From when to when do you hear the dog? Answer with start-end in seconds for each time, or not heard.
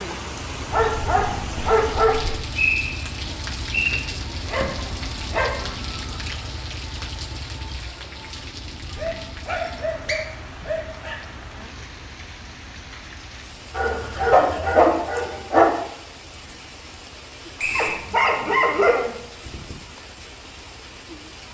0.7-2.4, 4.4-5.8, 8.9-11.2, 13.7-15.7, 17.8-19.8.